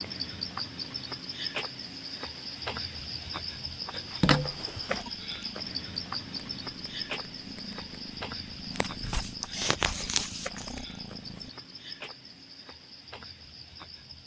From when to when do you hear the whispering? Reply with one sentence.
The whispering can't be heard in this clip.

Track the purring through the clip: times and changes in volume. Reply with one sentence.
The purring can be heard from 4.8 to 11.5 s, getting louder.